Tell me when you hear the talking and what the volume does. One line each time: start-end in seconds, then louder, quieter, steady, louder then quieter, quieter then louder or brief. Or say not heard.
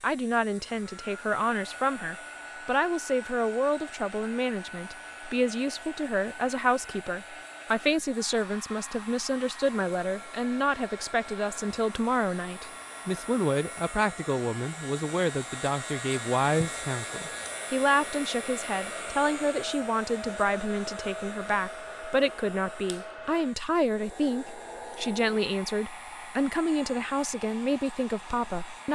0.0-28.9 steady.